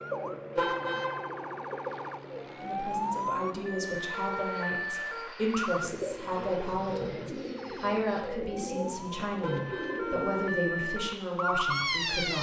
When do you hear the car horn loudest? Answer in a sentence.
The volume of the car horn peaks at 1 second.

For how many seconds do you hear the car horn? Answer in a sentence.
You can hear the car horn for 2 seconds altogether.